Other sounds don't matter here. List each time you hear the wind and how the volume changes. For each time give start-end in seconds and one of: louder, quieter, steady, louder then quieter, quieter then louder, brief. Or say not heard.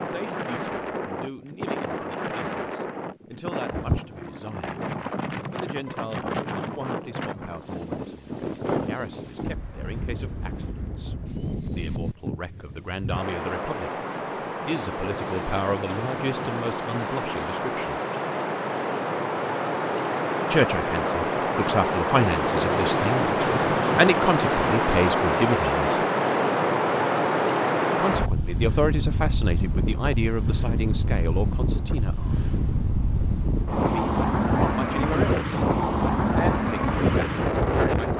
0.0-38.1 louder.